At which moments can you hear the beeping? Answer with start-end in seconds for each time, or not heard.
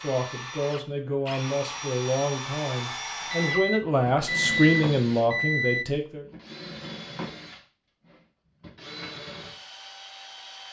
3.3-5.8.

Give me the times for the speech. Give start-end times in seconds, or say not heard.
0.0-6.2.